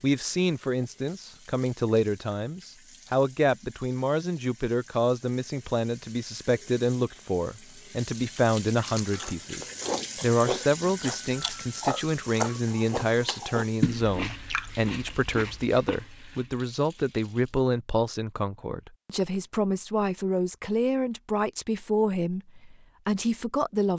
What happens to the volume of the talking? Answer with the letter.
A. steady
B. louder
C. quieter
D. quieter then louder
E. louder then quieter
A.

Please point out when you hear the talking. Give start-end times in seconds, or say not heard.
0.0-23.9.